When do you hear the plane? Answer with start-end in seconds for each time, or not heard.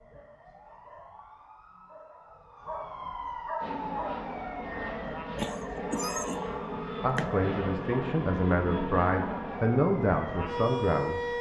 3.6-11.3.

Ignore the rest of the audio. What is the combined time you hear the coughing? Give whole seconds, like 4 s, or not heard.
2 s.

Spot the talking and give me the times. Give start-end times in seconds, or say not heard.
7.0-11.3.